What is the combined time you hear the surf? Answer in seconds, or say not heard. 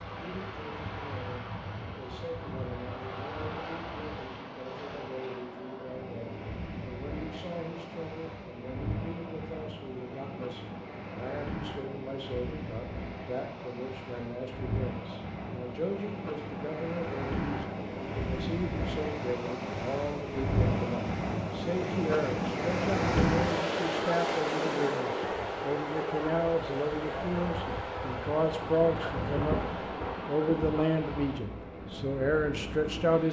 33 s.